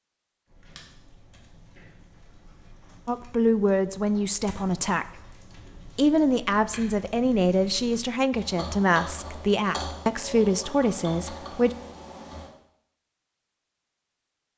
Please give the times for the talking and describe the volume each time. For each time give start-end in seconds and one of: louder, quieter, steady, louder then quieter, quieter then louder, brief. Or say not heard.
3.0-5.2 brief
6.0-11.7 steady.